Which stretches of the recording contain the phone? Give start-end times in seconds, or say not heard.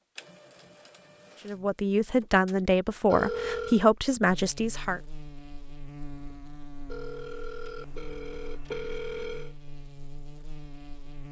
3.1-3.9, 6.9-9.6.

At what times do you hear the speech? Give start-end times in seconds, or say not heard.
1.4-5.0.